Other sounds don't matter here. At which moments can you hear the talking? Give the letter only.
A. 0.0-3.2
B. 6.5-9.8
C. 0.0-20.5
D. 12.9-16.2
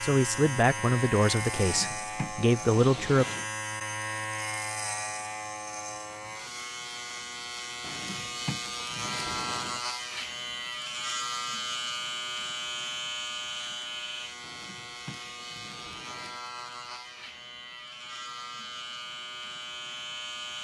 A.